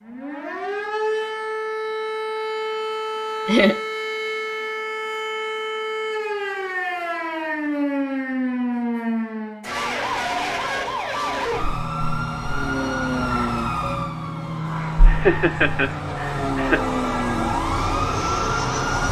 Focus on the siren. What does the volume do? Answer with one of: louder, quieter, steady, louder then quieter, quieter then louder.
steady.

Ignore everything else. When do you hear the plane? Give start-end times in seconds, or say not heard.
12.3-19.0.